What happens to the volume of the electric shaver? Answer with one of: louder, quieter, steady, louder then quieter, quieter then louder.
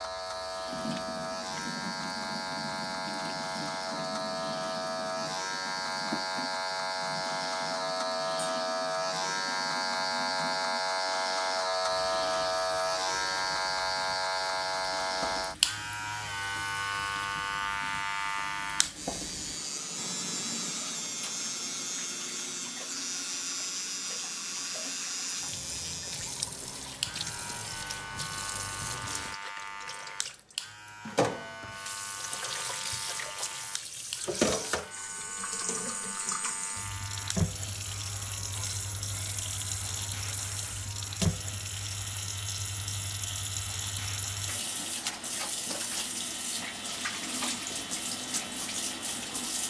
quieter.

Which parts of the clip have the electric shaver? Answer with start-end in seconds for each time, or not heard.
0.0-49.6.